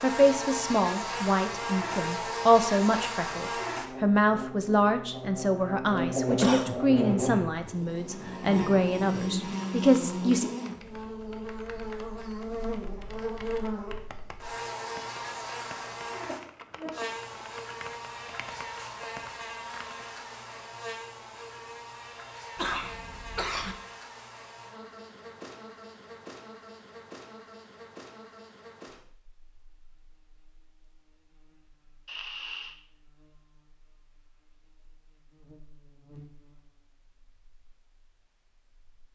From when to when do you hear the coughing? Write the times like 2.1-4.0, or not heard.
6.0-6.8, 22.6-23.8, 32.0-32.8.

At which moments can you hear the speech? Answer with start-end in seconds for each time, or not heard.
0.0-10.4.